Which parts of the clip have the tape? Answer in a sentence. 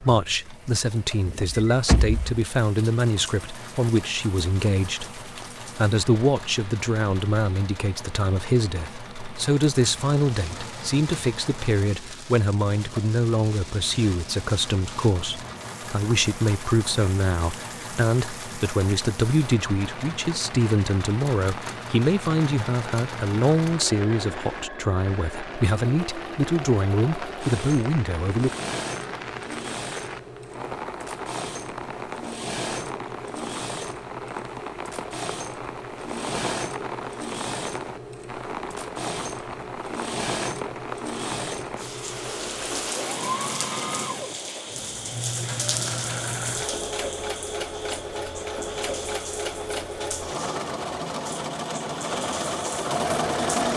The tape can't be heard in this clip.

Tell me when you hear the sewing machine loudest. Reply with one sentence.
The volume of the sewing machine peaks at 53 seconds.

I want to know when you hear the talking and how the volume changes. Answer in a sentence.
The talking can be heard from 0.0 to 28.6 s, at a steady volume.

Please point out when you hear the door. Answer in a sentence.
The door can be heard from 1.2 to 2.5 s.